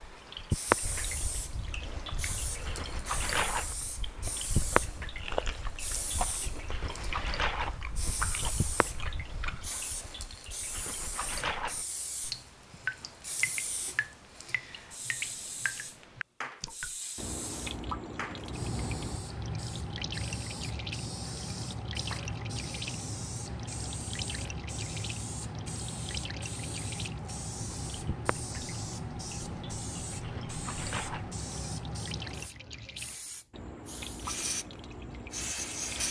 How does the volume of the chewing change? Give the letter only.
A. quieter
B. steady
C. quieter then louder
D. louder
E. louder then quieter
D.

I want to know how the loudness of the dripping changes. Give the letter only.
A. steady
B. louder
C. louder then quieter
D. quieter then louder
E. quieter
E.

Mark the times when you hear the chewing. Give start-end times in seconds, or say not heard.
0.8-9.7.